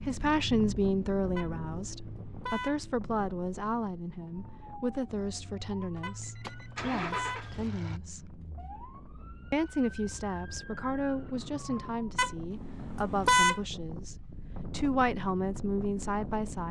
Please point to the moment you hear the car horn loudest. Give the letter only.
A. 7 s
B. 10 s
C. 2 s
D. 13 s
D.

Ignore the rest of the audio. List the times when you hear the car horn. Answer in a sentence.
The car horn can be heard from 1.4 to 2.8 s, from 6.0 to 7.5 s and from 12.2 to 13.6 s.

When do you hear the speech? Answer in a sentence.
The speech can be heard from 0.0 to 8.3 s and from 9.5 to 16.6 s.